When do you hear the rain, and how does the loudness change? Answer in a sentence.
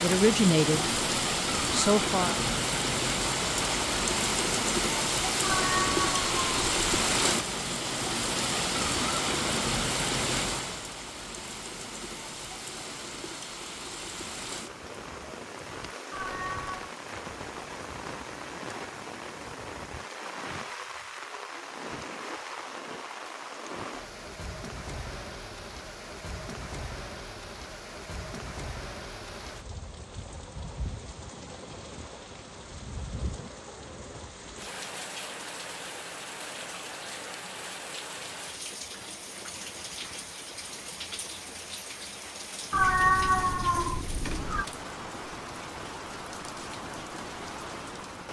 You can hear the rain from 0.0 to 48.2 s, getting quieter.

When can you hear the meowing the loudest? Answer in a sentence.
The volume of the meowing peaks at 43 seconds.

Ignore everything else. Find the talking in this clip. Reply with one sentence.
The talking can be heard from 0.0 to 0.8 s and from 1.7 to 2.4 s.